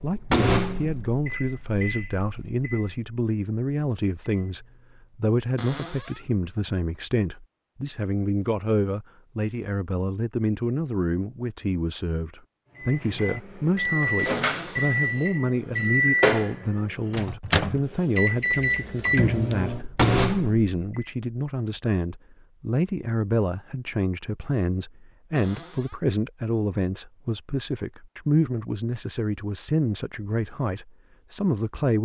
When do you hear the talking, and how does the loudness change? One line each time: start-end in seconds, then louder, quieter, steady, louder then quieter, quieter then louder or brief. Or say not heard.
0.0-32.0 steady.